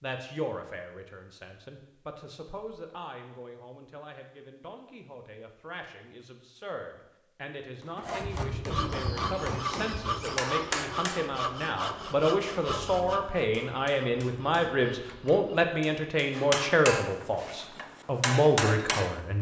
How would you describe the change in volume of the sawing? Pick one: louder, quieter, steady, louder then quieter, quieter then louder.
quieter.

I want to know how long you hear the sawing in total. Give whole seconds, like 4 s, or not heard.
8 s.